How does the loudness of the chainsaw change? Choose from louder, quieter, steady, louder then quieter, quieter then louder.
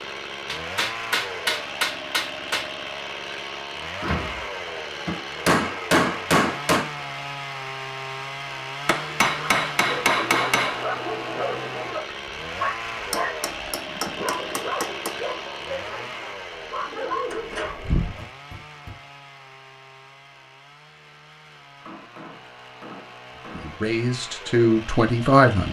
quieter.